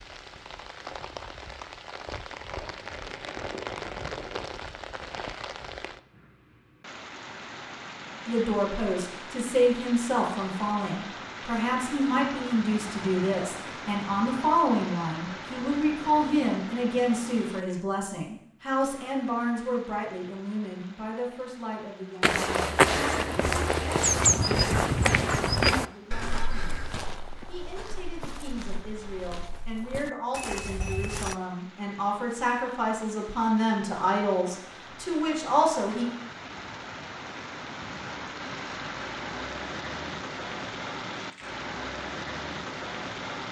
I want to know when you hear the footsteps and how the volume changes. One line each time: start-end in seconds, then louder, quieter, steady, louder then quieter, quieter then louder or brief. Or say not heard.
22.2-31.4 quieter then louder.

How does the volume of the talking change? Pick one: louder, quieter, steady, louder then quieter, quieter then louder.
quieter then louder.